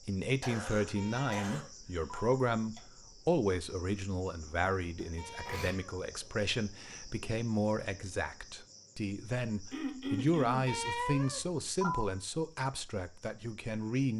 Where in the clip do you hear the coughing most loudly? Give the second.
10 s.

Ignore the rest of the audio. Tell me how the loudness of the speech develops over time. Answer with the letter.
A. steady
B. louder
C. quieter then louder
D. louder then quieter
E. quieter
A.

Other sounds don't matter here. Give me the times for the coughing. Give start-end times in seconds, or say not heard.
0.4-1.6, 2.4-2.8, 5.0-5.8, 9.7-10.7.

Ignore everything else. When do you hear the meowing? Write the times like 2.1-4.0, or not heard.
0.9-2.4, 5.2-6.0, 10.7-12.1.